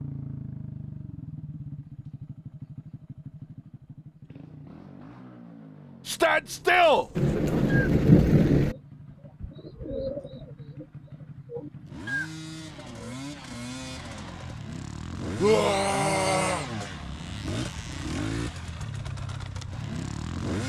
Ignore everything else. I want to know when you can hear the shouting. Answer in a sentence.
You can hear the shouting from 6.0 to 7.0 s and from 15.3 to 16.6 s.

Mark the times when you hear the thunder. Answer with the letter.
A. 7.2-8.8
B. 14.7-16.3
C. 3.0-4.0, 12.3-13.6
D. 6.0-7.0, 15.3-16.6
A.